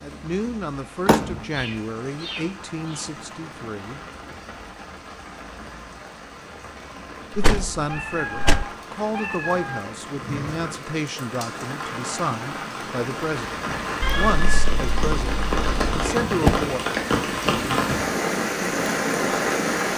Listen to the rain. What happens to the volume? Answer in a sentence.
The loudness of the rain goes up.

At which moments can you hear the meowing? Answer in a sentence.
You can hear the meowing from 1.5 to 3.0 s, from 7.8 to 9.8 s and from 14.0 to 15.9 s.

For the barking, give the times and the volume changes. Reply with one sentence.
The barking can't be heard in this clip.